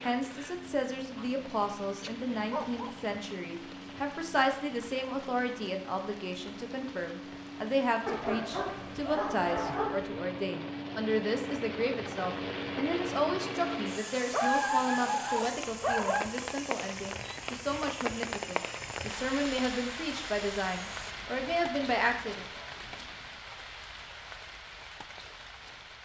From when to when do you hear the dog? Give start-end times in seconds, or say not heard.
2.0-2.9, 8.1-10.1, 14.3-16.3, 20.7-23.4.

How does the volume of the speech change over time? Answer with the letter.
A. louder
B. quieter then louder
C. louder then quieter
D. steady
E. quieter
D.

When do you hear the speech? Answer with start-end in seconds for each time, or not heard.
0.0-22.4.